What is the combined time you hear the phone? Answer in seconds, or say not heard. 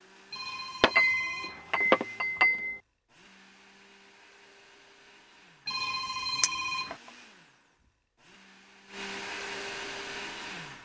3 s.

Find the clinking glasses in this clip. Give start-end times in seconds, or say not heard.
0.8-2.8, 6.4-7.0.